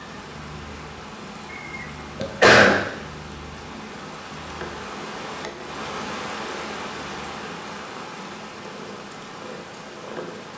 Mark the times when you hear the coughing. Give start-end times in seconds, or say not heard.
1.6-2.8.